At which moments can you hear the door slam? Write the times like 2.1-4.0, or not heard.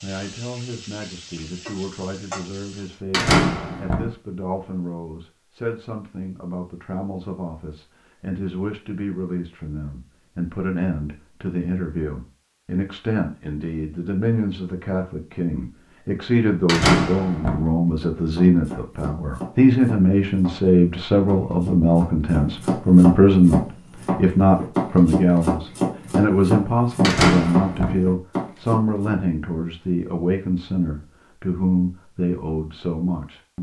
3.1-4.1, 16.6-17.6, 27.0-28.0.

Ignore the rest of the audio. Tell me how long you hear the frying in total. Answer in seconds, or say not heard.
3 s.